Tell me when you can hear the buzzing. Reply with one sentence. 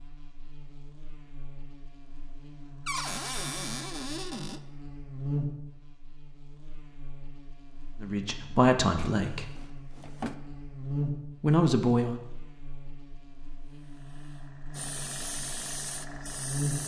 The buzzing can be heard from 0.0 to 16.8 s.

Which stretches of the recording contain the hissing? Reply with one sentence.
You can hear the hissing from 13.7 to 16.8 s.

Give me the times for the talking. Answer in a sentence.
The talking can be heard from 8.0 to 9.6 s and from 11.4 to 12.2 s.